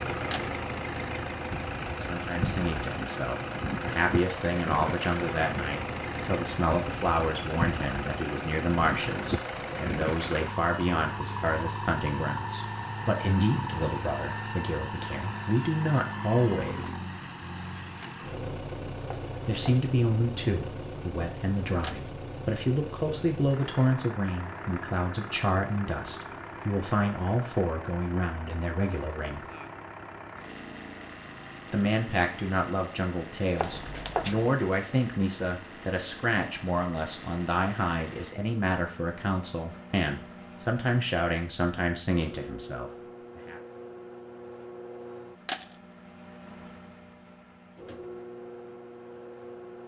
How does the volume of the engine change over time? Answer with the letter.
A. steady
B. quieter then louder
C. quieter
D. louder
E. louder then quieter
C.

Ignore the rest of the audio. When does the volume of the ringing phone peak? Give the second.
34 s.